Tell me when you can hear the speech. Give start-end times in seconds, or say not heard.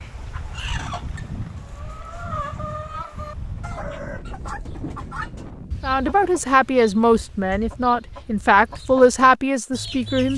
5.8-10.3.